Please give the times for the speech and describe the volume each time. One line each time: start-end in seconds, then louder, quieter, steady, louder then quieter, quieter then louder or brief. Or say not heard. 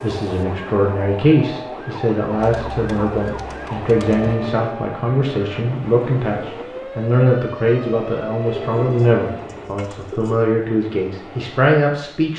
0.0-12.3 steady.